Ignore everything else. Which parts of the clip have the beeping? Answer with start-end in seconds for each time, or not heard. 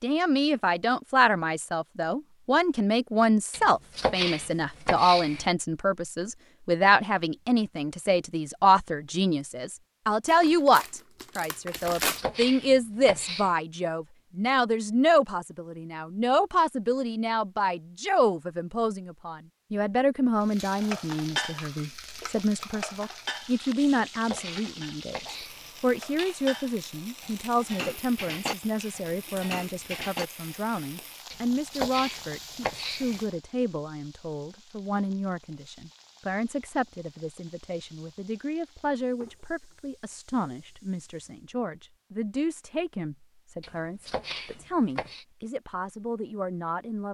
not heard.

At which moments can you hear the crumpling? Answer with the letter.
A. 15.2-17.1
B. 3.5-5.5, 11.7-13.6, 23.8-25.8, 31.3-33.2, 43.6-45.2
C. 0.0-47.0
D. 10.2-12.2
D.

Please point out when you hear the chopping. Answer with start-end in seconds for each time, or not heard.
3.5-5.5, 11.7-13.6, 23.8-25.8, 31.3-33.2, 43.6-45.2.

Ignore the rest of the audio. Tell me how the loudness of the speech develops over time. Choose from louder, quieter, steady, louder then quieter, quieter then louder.
quieter.